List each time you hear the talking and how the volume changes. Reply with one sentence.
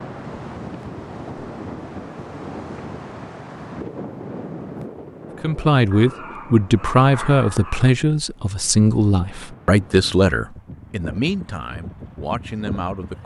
You can hear the talking from 5.4 to 13.2 s, getting quieter.